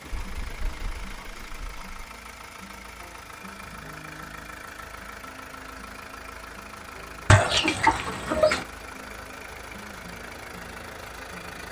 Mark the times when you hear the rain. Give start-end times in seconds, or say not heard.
not heard.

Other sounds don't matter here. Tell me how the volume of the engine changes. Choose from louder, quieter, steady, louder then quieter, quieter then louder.
steady.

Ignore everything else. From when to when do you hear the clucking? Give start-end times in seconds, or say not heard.
0.1-2.0, 7.2-8.6.